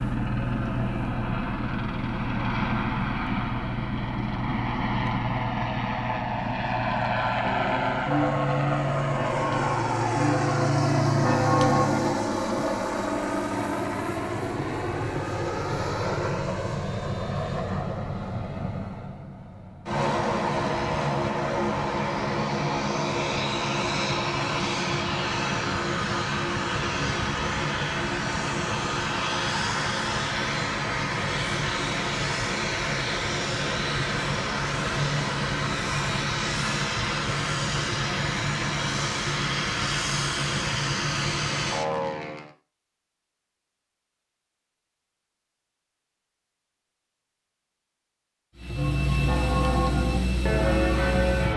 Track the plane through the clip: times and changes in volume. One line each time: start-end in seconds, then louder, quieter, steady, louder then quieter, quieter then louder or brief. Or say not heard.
0.0-42.5 steady
48.5-51.5 brief.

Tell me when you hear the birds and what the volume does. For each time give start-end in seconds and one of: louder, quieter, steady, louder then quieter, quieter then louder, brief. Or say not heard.
not heard.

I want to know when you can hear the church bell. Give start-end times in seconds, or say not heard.
7.4-12.7, 48.8-51.5.